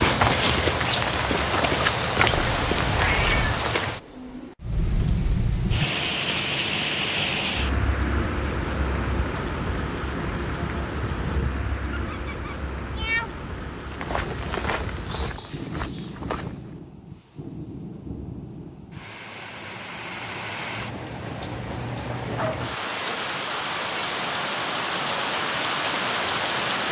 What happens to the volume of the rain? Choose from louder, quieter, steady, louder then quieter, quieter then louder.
quieter then louder.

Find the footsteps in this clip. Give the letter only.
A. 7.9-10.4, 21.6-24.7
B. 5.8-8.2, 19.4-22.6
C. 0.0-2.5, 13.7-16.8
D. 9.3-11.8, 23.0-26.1
C.